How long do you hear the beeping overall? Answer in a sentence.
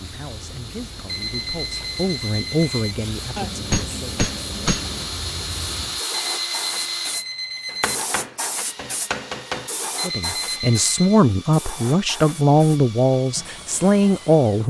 The beeping can be heard for 5 seconds in total.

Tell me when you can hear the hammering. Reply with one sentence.
You can hear the hammering from 3.4 to 5.1 s and from 7.7 to 9.7 s.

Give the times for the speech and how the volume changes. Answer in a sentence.
You can hear the speech from 0.0 to 4.2 s, getting louder then quieter; and from 10.0 to 14.6 s, at a steady volume.